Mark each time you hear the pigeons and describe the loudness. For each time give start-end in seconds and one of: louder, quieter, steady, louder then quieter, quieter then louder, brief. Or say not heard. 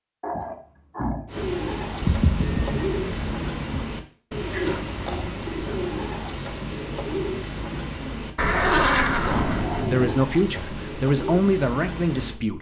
1.2-12.4 steady.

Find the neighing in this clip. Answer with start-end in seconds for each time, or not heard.
2.0-3.9, 8.3-9.9.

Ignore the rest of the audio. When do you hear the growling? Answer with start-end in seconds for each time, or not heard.
0.2-1.3, 4.5-6.0, 8.5-10.2.